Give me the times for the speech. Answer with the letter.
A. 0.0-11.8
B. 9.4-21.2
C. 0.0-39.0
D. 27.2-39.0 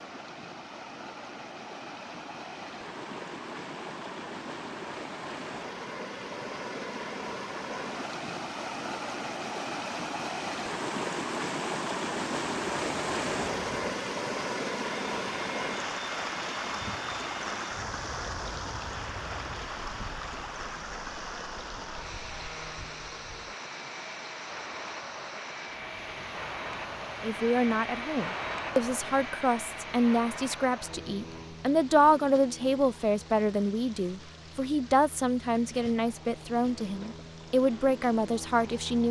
D.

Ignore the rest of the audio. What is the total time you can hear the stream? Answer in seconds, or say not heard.
39 s.